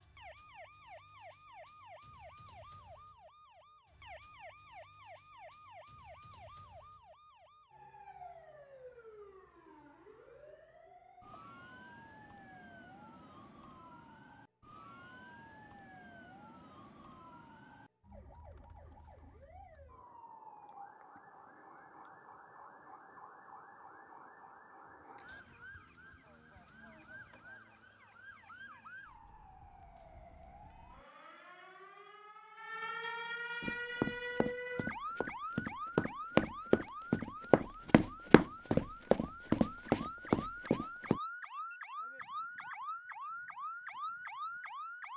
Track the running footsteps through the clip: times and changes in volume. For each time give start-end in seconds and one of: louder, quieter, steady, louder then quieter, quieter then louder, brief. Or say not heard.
33.6-41.2 louder.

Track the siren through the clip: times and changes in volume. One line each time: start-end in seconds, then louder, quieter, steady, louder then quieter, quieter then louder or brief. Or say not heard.
0.0-45.1 louder.